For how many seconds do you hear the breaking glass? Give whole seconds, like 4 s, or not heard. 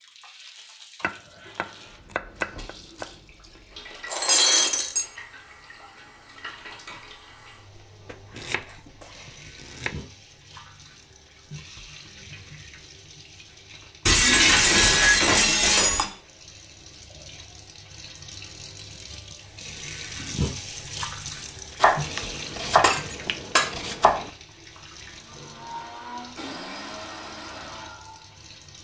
4 s.